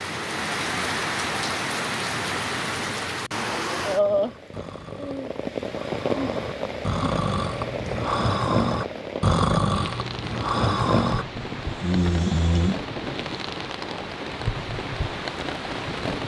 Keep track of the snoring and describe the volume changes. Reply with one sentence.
The loudness of the snoring goes up.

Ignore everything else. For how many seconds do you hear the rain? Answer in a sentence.
The rain can be heard for 16 seconds in total.